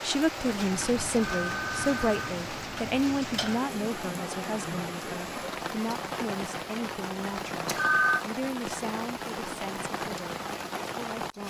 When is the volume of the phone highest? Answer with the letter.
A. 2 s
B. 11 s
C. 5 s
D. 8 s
D.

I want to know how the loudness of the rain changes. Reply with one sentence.
The loudness of the rain stays about the same.